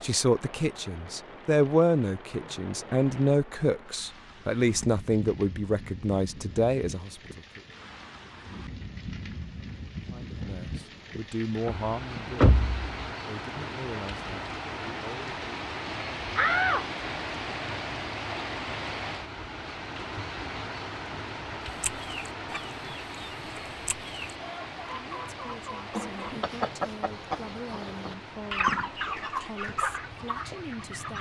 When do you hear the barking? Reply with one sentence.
You can't hear the barking here.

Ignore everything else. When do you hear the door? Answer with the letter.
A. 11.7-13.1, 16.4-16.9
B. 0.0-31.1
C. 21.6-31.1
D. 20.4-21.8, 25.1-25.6
A.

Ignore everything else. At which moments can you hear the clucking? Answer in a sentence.
You can hear the clucking from 21.6 to 31.1 s.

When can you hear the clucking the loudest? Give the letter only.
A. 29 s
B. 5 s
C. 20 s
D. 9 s
A.